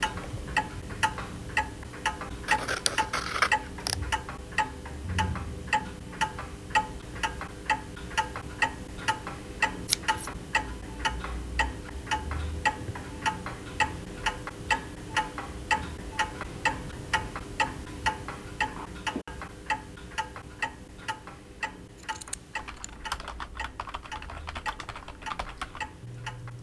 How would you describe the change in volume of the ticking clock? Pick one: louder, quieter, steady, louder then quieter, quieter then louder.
quieter.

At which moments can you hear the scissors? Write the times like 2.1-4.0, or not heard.
2.5-4.0, 9.8-10.3, 21.9-22.9.